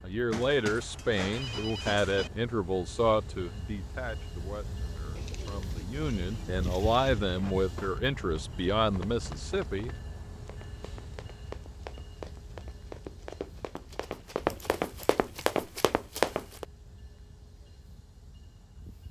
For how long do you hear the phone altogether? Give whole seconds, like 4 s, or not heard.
2 s.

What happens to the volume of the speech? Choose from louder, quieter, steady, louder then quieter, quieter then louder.
quieter then louder.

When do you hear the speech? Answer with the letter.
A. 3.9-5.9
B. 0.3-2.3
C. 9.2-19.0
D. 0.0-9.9
D.